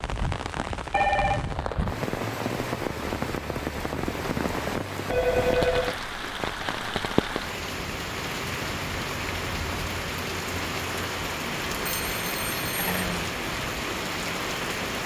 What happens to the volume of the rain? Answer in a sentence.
The volume of the rain stays about the same.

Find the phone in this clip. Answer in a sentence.
You can hear the phone from 0.9 to 1.6 s, from 5.1 to 6.0 s and from 11.8 to 13.1 s.